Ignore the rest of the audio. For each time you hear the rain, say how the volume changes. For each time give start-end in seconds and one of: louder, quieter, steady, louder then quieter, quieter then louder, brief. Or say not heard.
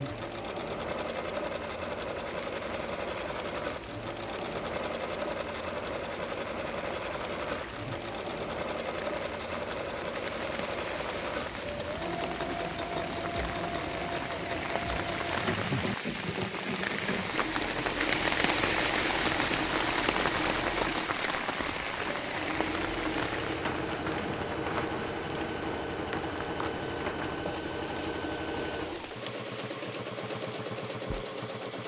0.0-31.8 louder then quieter.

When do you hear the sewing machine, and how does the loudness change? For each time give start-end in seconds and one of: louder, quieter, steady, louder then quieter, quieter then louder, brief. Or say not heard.
0.0-31.8 steady.